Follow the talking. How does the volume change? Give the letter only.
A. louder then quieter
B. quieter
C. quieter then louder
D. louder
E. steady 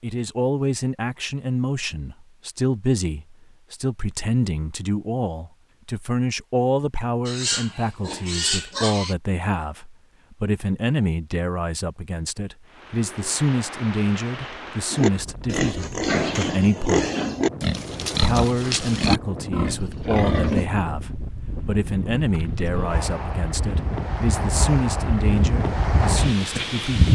E.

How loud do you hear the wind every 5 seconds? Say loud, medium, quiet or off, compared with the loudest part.
off, off, quiet, quiet, medium, loud.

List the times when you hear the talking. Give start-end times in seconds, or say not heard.
0.0-17.1, 18.2-27.1.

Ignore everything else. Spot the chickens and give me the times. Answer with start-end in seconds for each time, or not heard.
not heard.